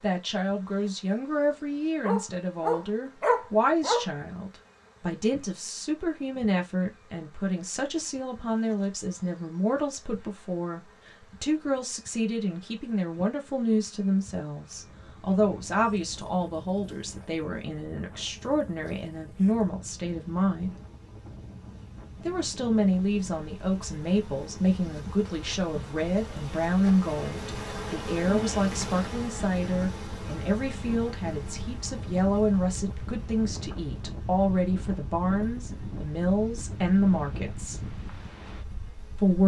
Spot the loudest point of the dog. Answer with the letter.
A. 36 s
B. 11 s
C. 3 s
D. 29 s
C.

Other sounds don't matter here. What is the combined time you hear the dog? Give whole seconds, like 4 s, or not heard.
2 s.